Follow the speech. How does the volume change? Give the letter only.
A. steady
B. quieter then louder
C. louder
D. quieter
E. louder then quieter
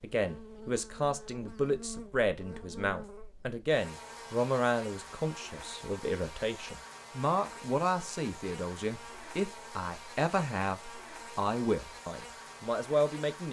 A.